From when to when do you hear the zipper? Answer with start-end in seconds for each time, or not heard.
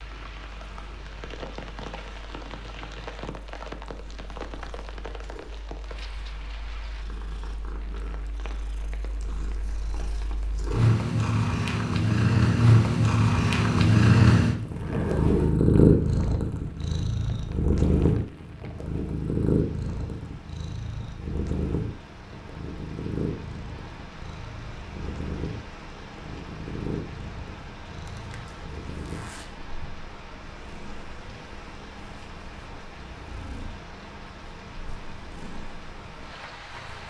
14.6-15.7, 28.1-29.4.